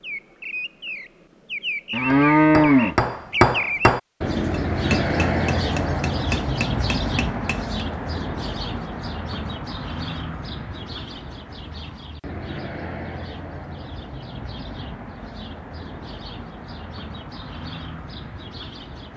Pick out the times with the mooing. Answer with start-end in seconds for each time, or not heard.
1.9-3.0.